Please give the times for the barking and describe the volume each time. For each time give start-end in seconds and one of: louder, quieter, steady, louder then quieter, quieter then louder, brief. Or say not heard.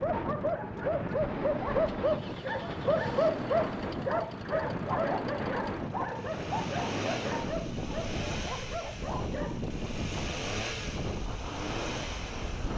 0.0-9.6 quieter.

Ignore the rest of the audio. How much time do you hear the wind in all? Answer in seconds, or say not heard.
13 s.